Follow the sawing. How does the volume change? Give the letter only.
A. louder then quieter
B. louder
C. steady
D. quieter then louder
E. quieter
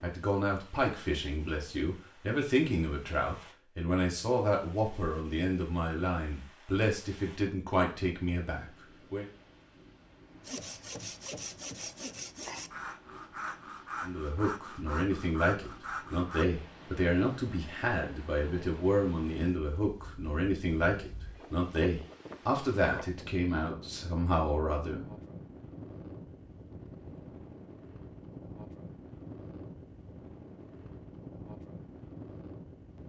C.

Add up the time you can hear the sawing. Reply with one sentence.
You can hear the sawing for 6 seconds altogether.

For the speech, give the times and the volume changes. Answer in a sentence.
You can hear the speech from 0.0 to 9.2 s, at a steady volume; and from 14.0 to 25.1 s, at a steady volume.